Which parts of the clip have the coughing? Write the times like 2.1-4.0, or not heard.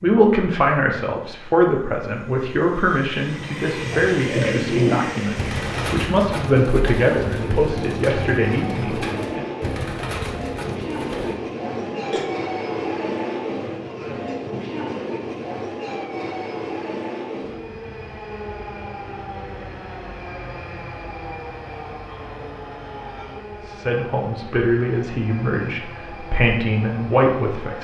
11.7-12.2.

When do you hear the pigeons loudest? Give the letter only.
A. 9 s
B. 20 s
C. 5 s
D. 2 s
C.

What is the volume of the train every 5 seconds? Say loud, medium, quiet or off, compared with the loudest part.
medium, loud, loud, loud, medium, medium.